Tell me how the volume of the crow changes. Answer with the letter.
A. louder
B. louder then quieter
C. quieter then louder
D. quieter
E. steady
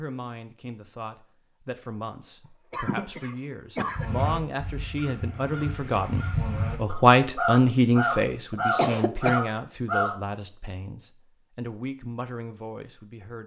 A.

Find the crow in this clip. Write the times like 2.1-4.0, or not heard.
3.9-10.2.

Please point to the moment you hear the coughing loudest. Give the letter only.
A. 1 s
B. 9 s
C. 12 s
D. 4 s
B.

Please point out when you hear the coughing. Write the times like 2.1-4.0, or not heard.
2.7-4.2, 8.5-9.4.